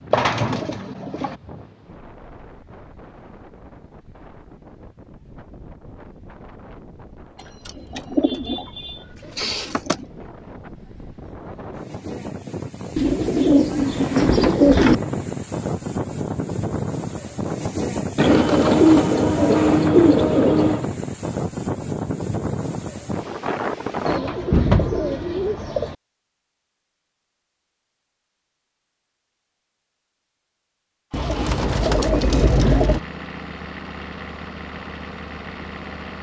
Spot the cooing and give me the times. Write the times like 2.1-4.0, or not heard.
0.1-1.4, 7.7-10.1, 12.9-14.9, 18.1-20.9, 24.1-25.9, 31.1-33.0.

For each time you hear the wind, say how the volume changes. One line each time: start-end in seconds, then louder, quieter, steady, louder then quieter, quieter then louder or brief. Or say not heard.
0.0-24.2 louder.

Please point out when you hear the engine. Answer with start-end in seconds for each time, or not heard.
31.1-36.1.